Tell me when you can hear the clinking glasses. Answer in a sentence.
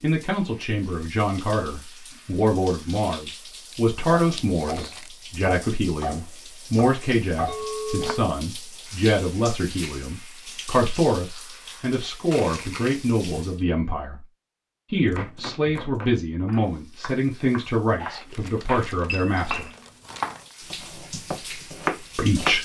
The clinking glasses can be heard from 7.5 to 8.2 s and from 19.1 to 19.7 s.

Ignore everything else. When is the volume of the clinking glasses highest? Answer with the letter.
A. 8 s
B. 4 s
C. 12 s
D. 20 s
A.